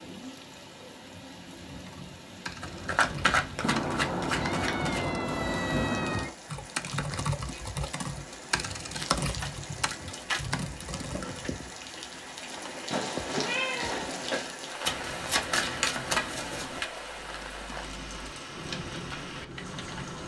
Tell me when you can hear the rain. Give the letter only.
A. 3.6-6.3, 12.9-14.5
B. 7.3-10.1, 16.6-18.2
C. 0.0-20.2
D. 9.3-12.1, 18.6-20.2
C.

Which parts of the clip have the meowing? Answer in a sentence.
The meowing can be heard from 3.6 to 6.3 s and from 12.9 to 14.5 s.